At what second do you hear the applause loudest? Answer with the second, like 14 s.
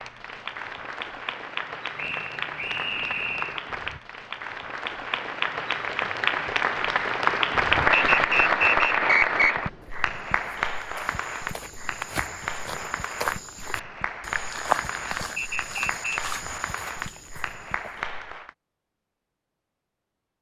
8 s.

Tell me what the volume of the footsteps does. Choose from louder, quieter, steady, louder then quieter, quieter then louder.
louder then quieter.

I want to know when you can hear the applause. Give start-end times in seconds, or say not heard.
0.0-18.5.